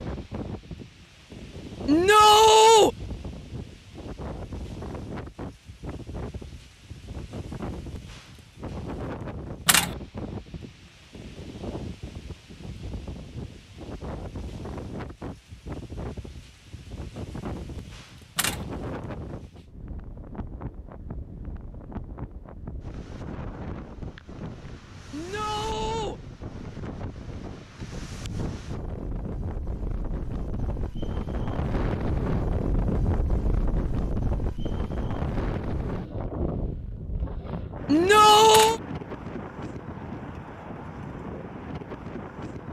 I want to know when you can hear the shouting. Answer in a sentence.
You can hear the shouting from 1.9 to 2.9 s, from 25.1 to 26.1 s and from 37.9 to 38.8 s.